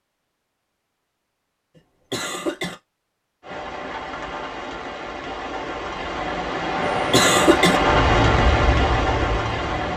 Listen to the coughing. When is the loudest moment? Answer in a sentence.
The loudest moment of the coughing is at 7 seconds.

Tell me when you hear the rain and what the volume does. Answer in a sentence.
You can hear the rain from 3.4 to 9.9 s, getting louder.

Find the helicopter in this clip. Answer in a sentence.
The helicopter can be heard from 6.8 to 9.9 s.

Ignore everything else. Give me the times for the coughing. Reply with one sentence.
You can hear the coughing from 1.8 to 2.8 s and from 6.8 to 7.8 s.